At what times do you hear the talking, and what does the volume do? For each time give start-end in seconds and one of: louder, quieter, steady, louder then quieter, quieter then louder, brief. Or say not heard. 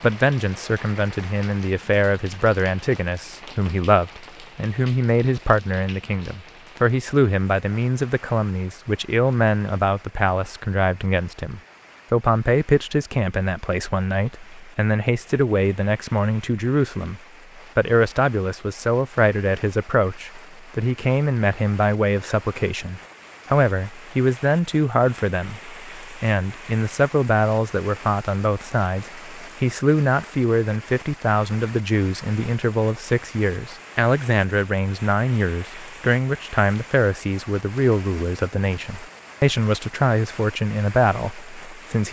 0.0-42.0 steady.